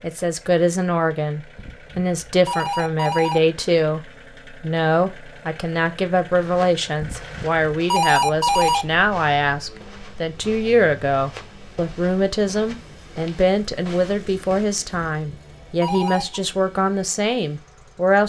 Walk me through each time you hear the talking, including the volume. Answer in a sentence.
You can hear the talking from 0.0 to 18.2 s, at a steady volume.